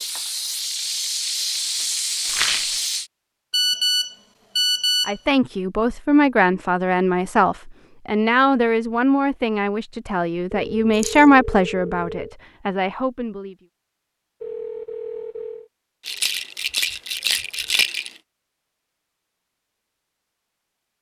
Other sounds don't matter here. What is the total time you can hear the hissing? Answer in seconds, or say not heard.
3 s.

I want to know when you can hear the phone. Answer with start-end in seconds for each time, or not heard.
3.5-5.2, 10.6-12.3, 14.4-15.7.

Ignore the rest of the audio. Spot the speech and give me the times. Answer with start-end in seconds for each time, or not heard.
5.0-13.6.